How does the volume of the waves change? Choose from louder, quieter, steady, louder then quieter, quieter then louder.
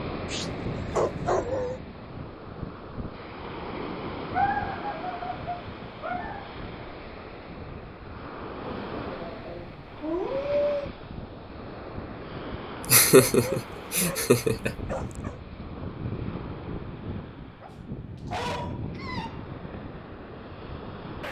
steady.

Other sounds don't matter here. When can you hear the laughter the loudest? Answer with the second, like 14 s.
13 s.